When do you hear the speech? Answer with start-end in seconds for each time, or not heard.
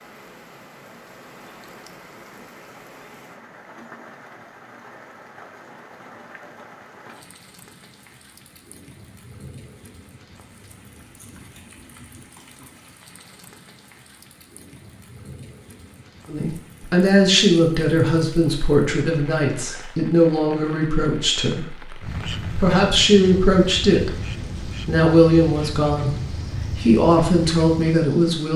16.2-28.5.